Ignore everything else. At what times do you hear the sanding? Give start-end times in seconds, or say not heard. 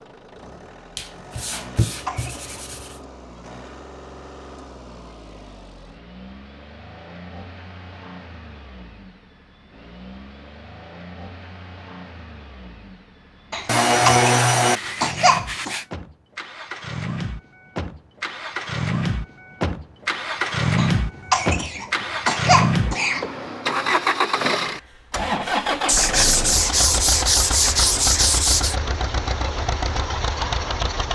0.9-3.0, 13.7-15.8, 25.9-28.8.